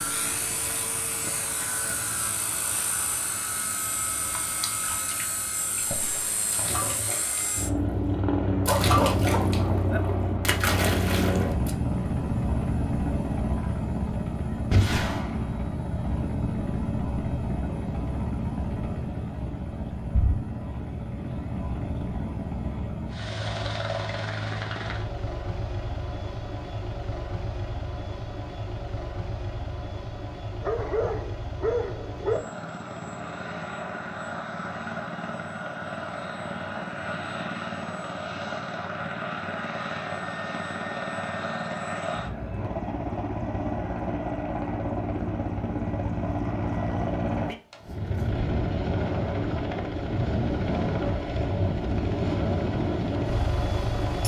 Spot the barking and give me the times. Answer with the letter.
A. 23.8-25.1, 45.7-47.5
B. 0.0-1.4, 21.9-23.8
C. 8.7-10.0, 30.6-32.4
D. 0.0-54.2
C.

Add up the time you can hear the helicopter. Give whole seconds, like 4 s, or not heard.
54 s.